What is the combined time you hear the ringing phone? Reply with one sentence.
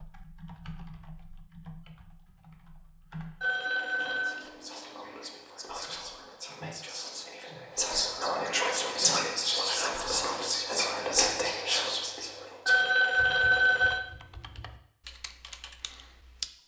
The ringing phone can be heard for 2 seconds in total.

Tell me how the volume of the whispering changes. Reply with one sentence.
The volume of the whispering goes up.